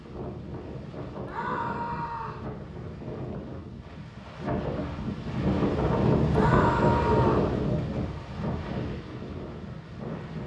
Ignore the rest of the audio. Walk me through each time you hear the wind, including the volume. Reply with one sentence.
You can hear the wind from 0.0 to 10.4 s, getting louder then quieter.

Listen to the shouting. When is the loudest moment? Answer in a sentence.
The loudest moment of the shouting is at 7 seconds.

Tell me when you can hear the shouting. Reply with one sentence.
The shouting can be heard from 1.2 to 2.5 s and from 6.3 to 7.5 s.